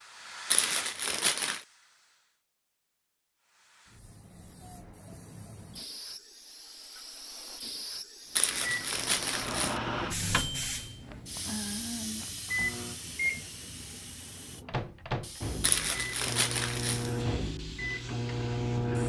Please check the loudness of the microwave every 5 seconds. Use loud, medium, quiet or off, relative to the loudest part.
off, loud, loud, loud.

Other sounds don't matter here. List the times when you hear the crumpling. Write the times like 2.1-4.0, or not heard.
0.5-1.6, 8.3-9.8, 15.6-17.1.